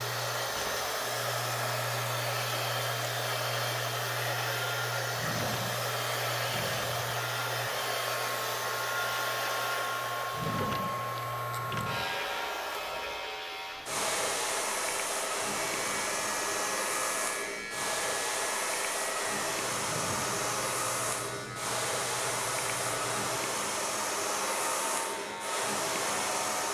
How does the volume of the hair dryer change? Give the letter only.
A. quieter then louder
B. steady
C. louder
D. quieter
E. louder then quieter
B.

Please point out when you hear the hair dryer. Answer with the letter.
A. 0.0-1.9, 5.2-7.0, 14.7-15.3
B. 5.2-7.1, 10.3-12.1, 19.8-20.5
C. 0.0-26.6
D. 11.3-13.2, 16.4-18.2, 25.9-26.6
C.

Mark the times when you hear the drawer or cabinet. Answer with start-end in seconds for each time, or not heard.
5.2-7.1, 10.3-12.1, 19.8-20.5.